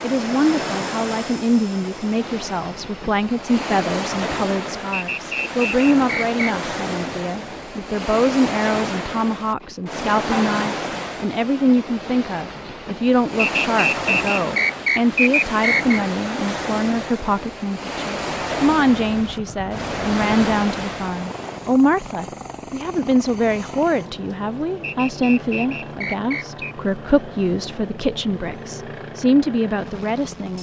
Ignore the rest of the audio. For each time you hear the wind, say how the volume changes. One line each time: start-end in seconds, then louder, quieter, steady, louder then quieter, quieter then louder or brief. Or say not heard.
0.0-21.8 steady.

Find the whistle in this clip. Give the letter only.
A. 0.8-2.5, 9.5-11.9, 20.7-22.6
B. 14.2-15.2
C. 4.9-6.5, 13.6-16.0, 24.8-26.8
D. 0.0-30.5
C.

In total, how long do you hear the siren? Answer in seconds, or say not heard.
not heard.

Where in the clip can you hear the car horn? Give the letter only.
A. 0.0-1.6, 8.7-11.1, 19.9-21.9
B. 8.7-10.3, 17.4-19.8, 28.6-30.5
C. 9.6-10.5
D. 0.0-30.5
C.